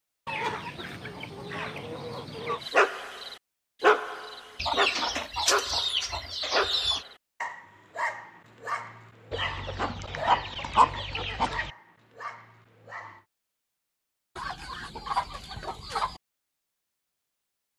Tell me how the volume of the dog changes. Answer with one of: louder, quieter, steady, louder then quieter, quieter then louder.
quieter.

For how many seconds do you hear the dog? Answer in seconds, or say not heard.
11 s.